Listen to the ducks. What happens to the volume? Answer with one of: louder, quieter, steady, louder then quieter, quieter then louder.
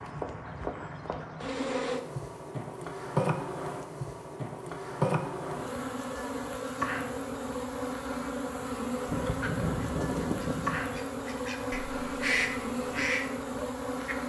quieter then louder.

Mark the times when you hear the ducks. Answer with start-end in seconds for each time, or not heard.
9.1-14.2.